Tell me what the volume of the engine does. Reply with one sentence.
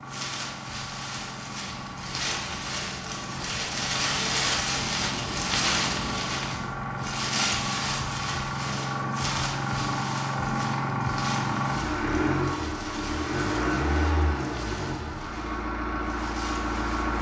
The volume of the engine goes up.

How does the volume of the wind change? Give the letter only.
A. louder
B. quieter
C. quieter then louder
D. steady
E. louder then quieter
E.